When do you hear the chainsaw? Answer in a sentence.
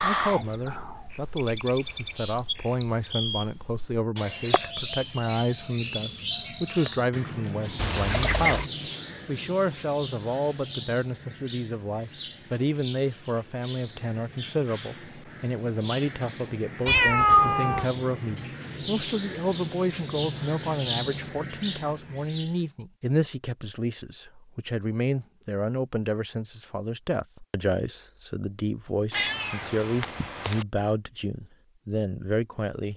You can't hear the chainsaw here.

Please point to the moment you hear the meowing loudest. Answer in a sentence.
The loudest moment of the meowing is at 17 seconds.